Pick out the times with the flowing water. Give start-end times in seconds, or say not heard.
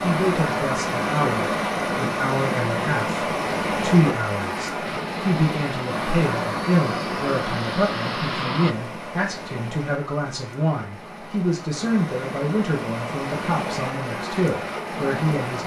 0.0-15.6.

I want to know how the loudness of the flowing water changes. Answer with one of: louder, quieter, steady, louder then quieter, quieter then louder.
quieter then louder.